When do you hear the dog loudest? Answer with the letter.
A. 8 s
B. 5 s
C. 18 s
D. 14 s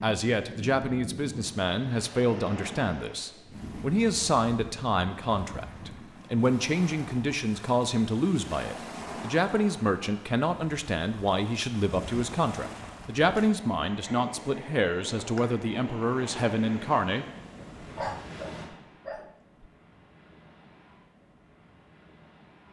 C.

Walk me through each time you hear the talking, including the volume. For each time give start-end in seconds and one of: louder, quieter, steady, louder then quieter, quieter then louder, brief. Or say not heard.
0.0-17.2 steady.